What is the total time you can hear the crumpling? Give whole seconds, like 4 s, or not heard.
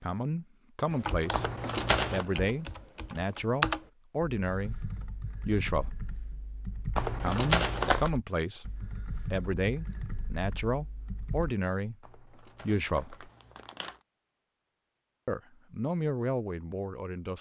4 s.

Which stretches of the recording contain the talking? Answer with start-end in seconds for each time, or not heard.
0.0-1.5, 2.1-6.1, 7.2-8.7, 9.3-13.3, 15.2-17.3.